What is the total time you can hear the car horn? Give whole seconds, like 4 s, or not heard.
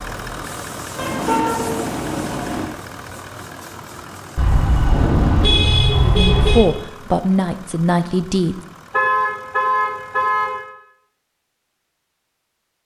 6 s.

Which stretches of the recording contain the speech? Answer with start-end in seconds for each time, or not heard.
6.0-8.6.